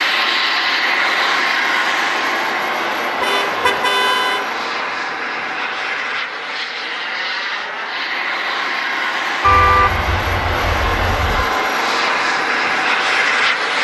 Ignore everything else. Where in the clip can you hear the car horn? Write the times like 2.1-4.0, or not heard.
3.2-4.5, 9.4-11.4.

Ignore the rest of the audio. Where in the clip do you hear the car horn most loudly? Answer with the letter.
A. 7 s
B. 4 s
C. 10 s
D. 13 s
C.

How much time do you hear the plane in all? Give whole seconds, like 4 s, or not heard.
14 s.